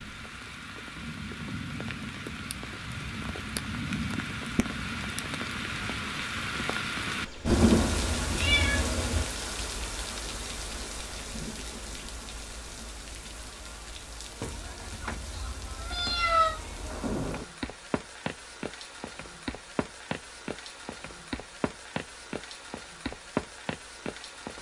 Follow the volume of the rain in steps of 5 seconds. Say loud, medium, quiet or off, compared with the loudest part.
medium, loud, medium, medium, medium.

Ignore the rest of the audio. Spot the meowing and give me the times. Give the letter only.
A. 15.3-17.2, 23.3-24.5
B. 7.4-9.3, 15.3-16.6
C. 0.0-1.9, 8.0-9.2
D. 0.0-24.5
B.